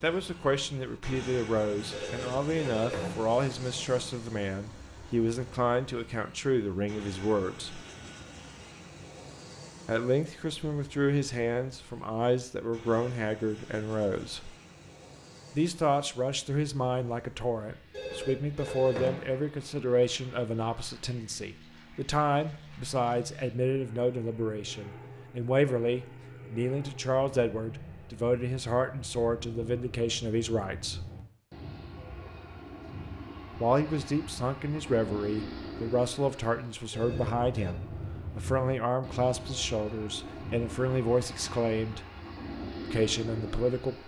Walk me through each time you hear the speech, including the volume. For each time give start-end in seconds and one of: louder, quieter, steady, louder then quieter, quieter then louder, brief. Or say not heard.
0.0-7.8 steady
9.8-14.6 steady
15.5-31.1 steady
33.5-42.0 steady
42.9-44.0 brief.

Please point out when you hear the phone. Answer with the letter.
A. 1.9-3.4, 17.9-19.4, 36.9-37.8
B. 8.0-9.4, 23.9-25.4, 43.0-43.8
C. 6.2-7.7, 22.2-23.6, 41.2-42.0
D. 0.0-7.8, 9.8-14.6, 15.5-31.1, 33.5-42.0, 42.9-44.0
A.